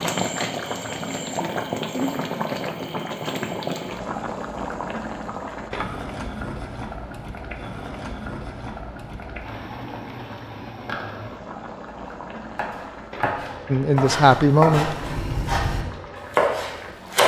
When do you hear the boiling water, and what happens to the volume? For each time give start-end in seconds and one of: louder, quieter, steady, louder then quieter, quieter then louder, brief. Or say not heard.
0.0-17.2 quieter.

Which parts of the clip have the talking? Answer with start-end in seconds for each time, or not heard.
13.7-14.9.